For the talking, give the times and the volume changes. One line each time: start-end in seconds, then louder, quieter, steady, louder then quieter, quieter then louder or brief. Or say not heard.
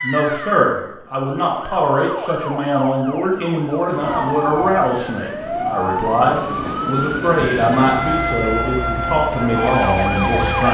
0.0-10.6 steady.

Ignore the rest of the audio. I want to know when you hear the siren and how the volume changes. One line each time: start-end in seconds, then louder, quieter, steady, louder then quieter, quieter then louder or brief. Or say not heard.
0.0-10.6 louder.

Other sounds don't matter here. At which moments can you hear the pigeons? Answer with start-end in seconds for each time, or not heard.
not heard.